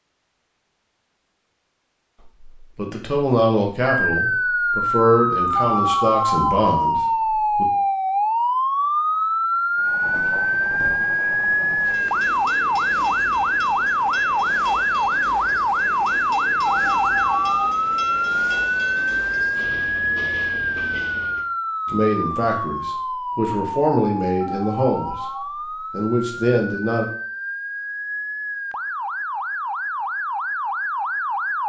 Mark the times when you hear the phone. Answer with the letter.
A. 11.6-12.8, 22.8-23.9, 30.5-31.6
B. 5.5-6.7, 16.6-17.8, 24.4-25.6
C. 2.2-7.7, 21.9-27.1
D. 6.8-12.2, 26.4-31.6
B.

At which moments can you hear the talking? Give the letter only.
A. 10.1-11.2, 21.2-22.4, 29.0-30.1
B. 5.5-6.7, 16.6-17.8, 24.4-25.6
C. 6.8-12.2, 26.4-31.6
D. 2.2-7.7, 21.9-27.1
D.